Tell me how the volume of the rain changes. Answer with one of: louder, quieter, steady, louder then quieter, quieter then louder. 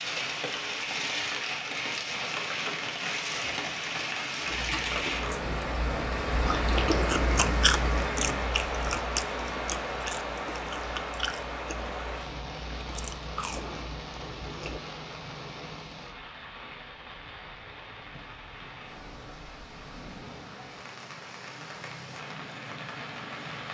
quieter.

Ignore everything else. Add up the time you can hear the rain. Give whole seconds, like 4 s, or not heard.
24 s.